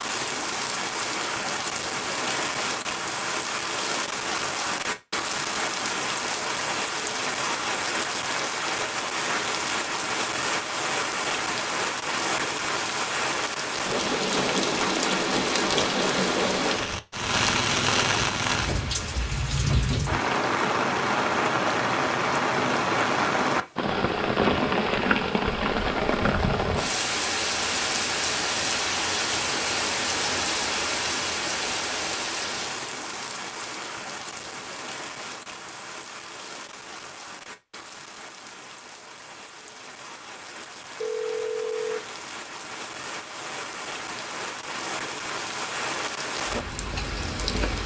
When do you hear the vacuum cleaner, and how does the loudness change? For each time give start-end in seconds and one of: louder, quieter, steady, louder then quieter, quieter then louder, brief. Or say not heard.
not heard.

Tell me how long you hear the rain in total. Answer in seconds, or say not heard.
48 s.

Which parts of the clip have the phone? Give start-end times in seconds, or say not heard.
41.0-42.0.